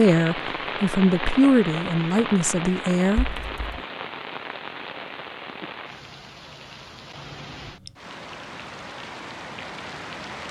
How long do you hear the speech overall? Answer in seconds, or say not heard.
3 s.